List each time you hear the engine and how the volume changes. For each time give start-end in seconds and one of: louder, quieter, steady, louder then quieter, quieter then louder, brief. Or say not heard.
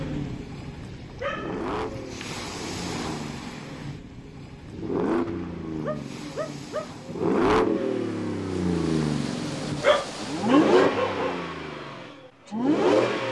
0.0-13.2 louder.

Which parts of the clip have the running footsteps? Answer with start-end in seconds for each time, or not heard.
not heard.